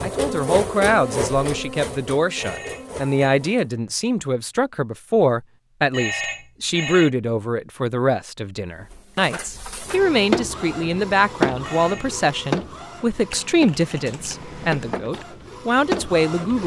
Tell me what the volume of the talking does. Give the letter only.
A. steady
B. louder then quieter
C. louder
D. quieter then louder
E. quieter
A.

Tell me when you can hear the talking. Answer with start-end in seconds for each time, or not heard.
0.0-16.6.